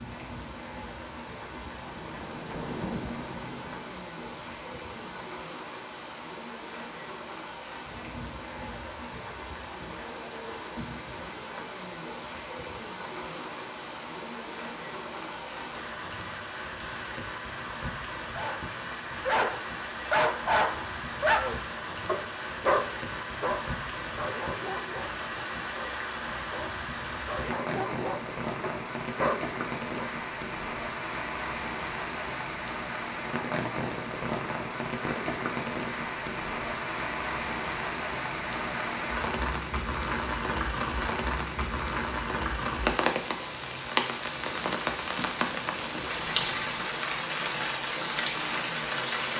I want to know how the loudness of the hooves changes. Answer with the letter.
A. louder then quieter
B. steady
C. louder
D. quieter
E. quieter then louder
A.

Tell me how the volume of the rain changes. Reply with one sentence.
The loudness of the rain goes up.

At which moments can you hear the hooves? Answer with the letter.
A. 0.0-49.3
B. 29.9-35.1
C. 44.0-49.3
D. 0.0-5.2
D.